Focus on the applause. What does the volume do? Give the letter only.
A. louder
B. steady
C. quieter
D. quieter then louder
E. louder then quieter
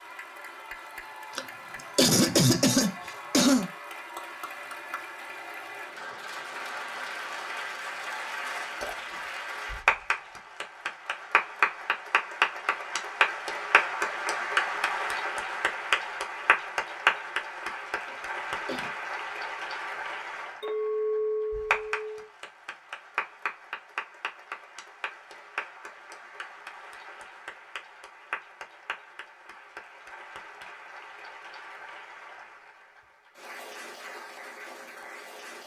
E.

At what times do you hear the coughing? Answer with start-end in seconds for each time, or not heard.
1.4-3.7, 18.1-18.9.